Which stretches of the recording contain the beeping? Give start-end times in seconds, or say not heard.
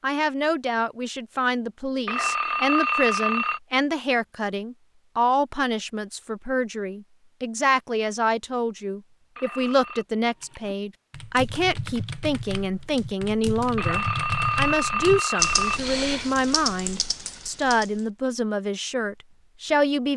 2.0-3.6, 9.3-10.1, 13.8-15.8.